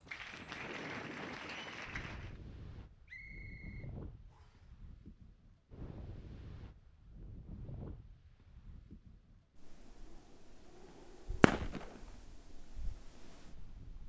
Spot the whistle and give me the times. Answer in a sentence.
The whistle can be heard from 3.0 to 4.7 s.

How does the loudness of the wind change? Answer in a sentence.
The volume of the wind goes down.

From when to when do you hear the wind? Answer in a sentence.
You can hear the wind from 0.0 to 14.0 s.